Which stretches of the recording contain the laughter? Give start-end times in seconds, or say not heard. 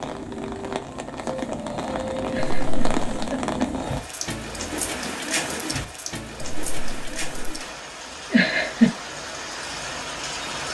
2.2-3.5, 8.3-8.9.